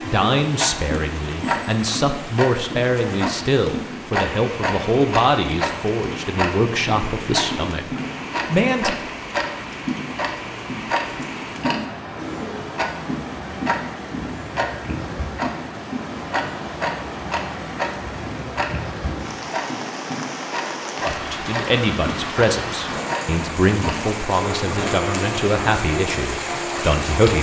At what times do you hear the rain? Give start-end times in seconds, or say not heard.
0.0-27.3.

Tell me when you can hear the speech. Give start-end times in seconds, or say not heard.
0.0-8.9, 21.0-27.3.